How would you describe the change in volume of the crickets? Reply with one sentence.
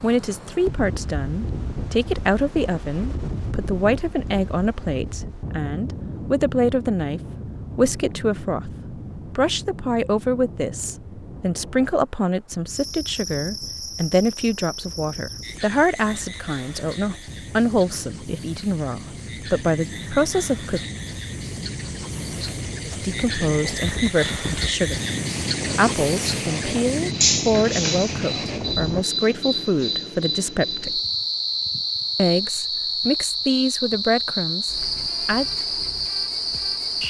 The loudness of the crickets goes up.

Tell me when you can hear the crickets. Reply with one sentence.
You can hear the crickets from 12.7 to 37.0 s.